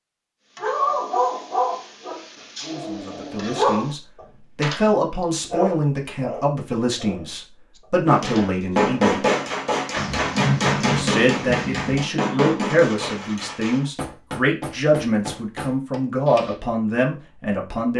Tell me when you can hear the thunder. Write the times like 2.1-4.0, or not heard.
9.9-12.0.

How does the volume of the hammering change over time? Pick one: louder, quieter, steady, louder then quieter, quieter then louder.
quieter.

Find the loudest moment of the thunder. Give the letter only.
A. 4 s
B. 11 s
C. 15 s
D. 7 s
B.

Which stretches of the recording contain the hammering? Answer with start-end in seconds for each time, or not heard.
8.1-16.6.